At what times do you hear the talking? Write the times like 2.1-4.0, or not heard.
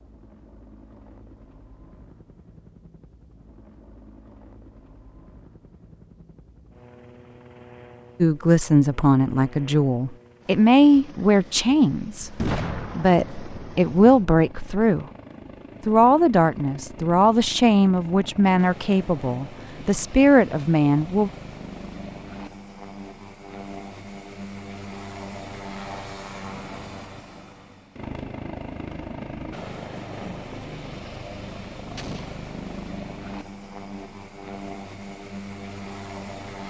8.2-15.1, 15.8-21.3.